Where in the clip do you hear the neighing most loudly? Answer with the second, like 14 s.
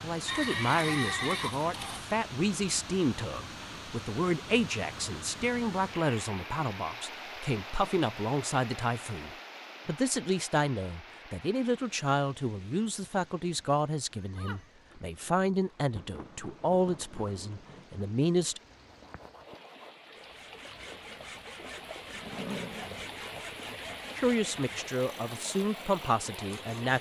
1 s.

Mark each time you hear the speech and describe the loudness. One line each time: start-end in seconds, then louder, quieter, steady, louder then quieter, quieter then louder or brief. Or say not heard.
0.0-18.6 steady
24.1-26.9 brief.